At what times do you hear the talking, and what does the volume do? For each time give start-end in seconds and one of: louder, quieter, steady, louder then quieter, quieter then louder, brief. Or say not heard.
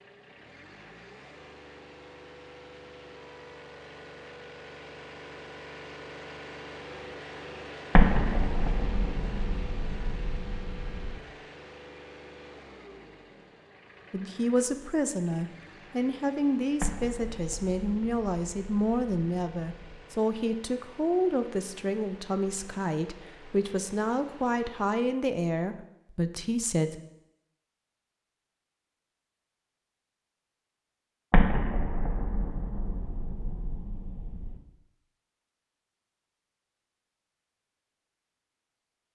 14.1-27.0 steady.